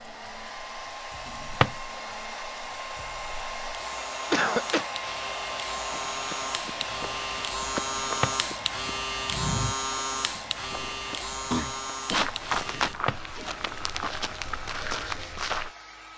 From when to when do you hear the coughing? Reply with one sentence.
The coughing can be heard from 4.3 to 4.9 s and from 11.5 to 12.9 s.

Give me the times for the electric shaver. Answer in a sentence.
The electric shaver can be heard from 0.0 to 12.9 s.